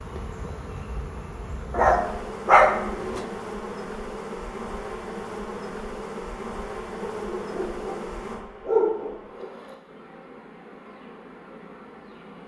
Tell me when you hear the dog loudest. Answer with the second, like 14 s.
3 s.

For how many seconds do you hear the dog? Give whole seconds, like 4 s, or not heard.
4 s.